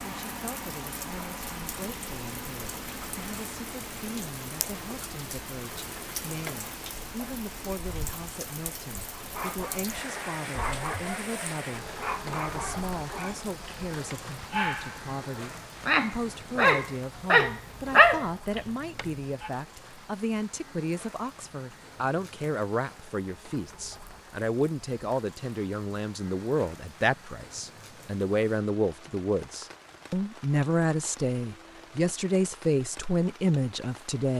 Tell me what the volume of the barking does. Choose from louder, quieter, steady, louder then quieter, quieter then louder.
louder.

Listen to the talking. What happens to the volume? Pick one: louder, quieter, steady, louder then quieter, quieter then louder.
louder.